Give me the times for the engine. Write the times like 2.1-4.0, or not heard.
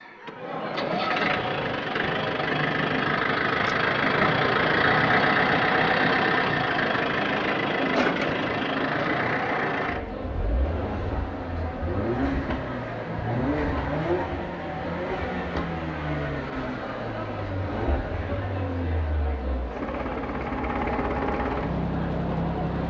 0.0-22.8.